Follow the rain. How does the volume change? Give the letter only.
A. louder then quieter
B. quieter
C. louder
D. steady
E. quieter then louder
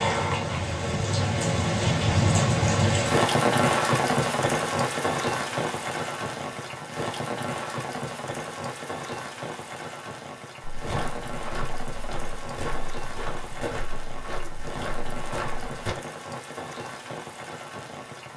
B.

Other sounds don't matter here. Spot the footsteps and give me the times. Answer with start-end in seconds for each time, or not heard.
10.7-15.9.